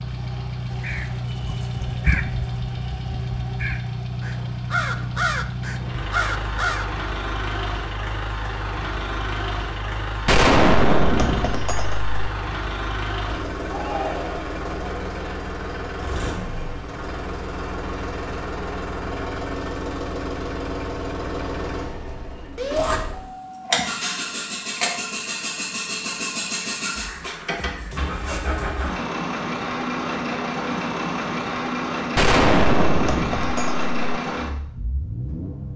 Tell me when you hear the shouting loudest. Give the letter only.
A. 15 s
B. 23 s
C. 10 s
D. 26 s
B.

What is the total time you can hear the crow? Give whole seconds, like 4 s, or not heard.
6 s.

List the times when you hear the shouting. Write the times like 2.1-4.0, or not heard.
13.7-14.4, 22.6-23.0.